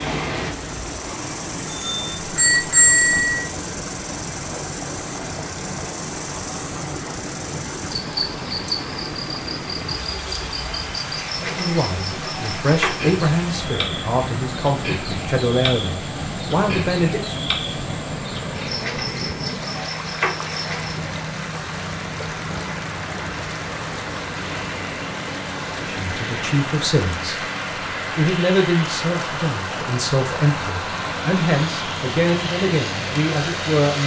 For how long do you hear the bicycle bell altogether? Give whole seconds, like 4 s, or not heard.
2 s.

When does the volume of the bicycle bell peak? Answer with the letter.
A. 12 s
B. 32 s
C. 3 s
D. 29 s
C.